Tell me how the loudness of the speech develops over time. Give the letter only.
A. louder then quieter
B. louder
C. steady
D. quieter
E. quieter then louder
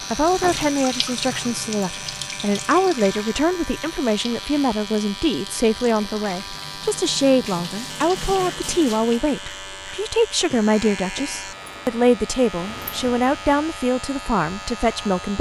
C.